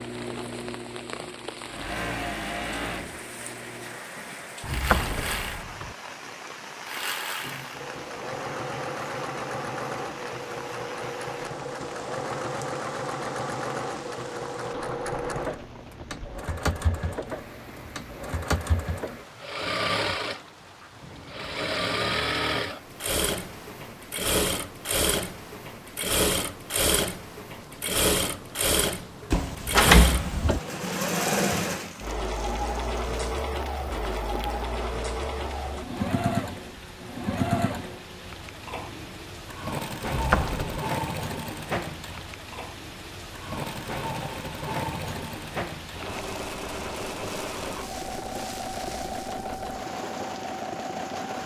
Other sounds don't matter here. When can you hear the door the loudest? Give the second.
30 s.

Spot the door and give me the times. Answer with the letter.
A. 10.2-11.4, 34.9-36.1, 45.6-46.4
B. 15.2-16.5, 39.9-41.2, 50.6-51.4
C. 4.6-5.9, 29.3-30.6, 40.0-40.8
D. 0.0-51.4
C.